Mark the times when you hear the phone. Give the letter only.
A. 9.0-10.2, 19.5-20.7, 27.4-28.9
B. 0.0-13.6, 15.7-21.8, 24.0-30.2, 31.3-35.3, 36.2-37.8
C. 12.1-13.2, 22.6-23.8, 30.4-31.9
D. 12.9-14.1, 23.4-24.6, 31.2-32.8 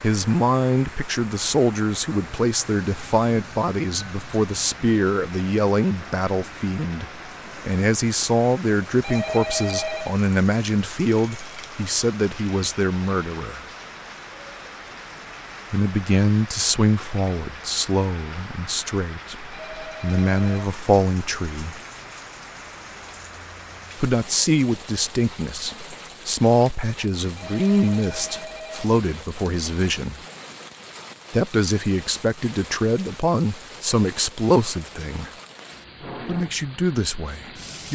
A.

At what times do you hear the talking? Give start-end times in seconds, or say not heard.
0.0-13.6, 15.7-21.8, 24.0-30.2, 31.3-35.3, 36.2-37.8.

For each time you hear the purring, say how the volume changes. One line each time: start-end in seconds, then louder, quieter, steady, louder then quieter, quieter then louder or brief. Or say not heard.
not heard.